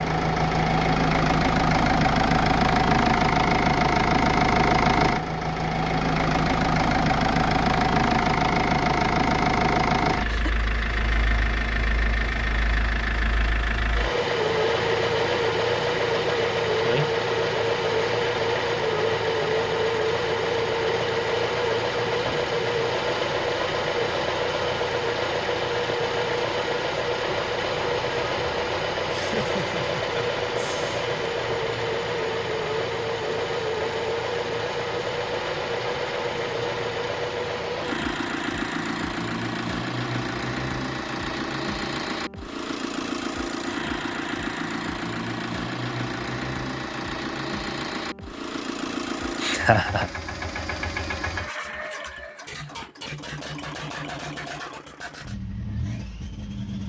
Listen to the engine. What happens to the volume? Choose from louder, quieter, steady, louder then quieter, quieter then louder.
quieter.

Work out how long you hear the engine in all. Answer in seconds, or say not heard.
57 s.